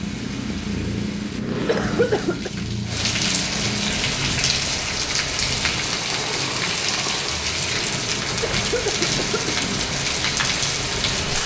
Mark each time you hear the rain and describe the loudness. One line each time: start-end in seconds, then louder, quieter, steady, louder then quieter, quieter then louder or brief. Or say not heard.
0.0-11.4 louder.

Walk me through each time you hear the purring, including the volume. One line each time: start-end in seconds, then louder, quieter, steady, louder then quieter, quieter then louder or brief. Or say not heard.
0.0-11.4 quieter.